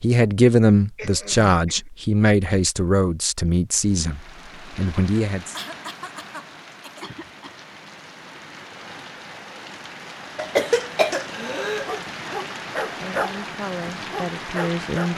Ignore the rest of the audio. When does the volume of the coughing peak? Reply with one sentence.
The volume of the coughing peaks at 11 seconds.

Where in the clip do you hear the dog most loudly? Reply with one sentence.
The volume of the dog peaks at 13 seconds.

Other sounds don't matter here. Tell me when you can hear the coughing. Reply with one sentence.
You can hear the coughing from 0.9 to 1.9 s, from 5.5 to 7.1 s and from 10.3 to 11.9 s.